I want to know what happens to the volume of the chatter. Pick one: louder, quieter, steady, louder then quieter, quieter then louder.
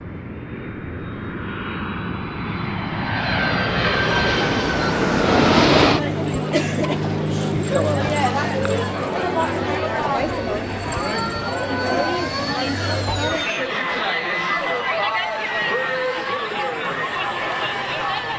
steady.